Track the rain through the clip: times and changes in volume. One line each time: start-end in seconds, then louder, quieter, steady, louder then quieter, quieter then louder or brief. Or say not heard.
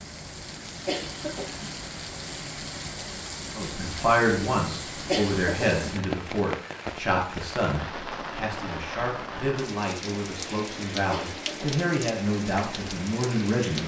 0.0-13.8 steady.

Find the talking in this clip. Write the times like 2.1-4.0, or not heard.
3.5-13.8.